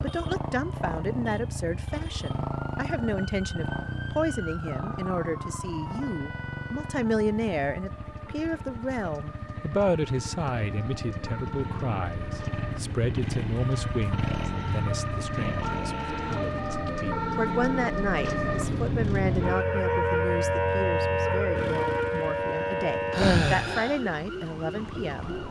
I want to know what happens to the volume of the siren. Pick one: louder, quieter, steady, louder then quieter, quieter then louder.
louder.